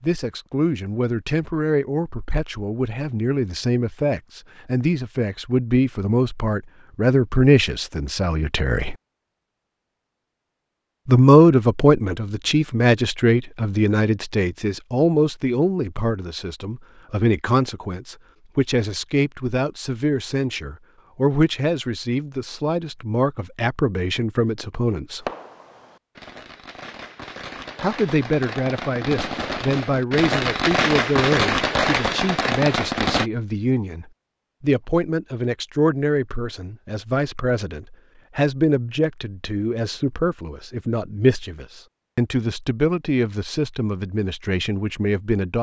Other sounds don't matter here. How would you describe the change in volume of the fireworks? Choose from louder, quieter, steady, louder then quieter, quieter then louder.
louder.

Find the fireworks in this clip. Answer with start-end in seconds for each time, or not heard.
25.2-33.3.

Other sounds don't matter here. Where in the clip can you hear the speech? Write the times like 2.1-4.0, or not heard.
0.0-8.9, 11.1-25.3, 27.8-45.5.